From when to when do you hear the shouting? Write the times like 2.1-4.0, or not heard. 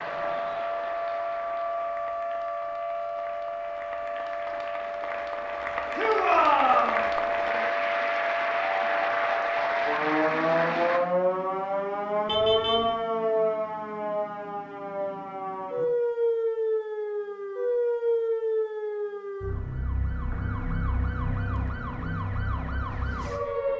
6.0-7.0.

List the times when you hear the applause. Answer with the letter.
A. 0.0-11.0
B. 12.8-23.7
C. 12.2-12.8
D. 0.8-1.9
A.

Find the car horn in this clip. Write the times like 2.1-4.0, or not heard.
12.2-12.8.